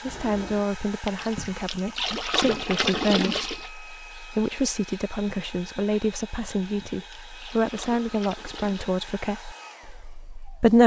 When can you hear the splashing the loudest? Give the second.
3 s.